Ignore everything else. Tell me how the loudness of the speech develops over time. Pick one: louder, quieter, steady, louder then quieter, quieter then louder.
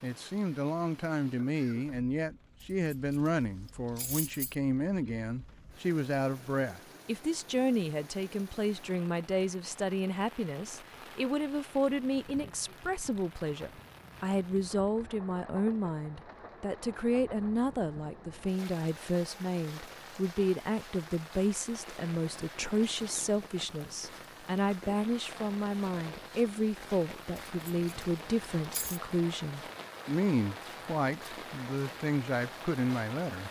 steady.